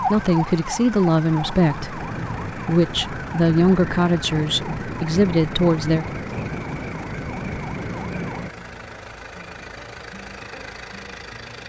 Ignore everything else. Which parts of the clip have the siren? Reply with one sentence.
You can hear the siren from 0.0 to 8.5 s.